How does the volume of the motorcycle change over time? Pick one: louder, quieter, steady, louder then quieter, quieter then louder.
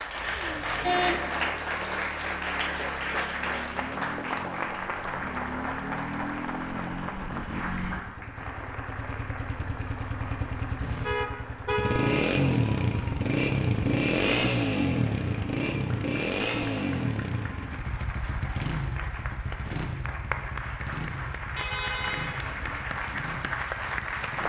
louder then quieter.